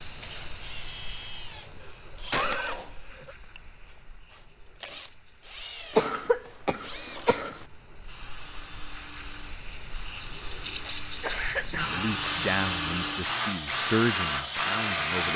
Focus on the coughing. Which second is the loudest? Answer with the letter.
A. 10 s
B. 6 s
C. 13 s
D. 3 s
B.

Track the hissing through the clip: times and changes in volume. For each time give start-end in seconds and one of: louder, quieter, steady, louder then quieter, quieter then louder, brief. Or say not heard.
0.0-15.3 quieter then louder.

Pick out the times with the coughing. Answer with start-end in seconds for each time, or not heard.
1.8-3.4, 6.0-7.7, 11.2-12.0.